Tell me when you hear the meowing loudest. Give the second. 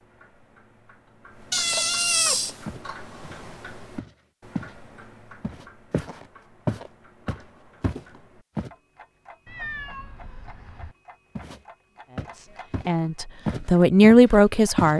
2 s.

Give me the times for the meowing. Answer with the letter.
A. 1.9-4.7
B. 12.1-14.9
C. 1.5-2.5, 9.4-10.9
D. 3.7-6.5
C.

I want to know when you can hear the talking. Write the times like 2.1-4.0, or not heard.
12.1-14.9.